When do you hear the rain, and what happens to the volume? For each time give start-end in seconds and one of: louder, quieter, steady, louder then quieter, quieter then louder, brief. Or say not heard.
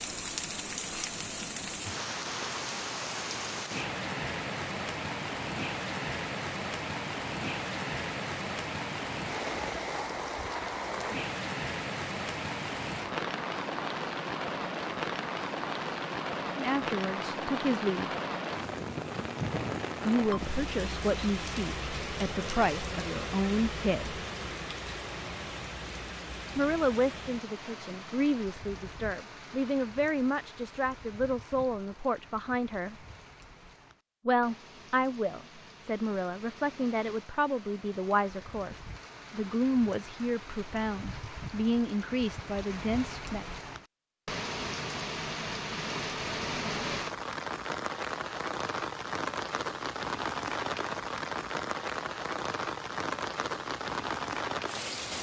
0.0-55.1 quieter then louder.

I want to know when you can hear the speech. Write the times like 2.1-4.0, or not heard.
16.6-18.1, 20.1-24.2, 26.6-33.0, 34.2-43.5.